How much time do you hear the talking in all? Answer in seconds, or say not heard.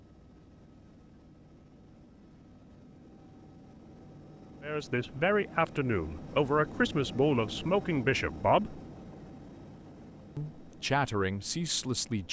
6 s.